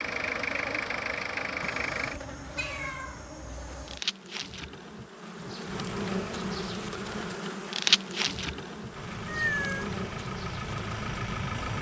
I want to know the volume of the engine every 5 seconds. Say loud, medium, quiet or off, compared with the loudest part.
loud, medium, loud.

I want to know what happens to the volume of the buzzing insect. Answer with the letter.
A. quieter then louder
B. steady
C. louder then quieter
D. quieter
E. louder
C.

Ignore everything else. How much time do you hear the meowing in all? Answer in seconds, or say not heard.
3 s.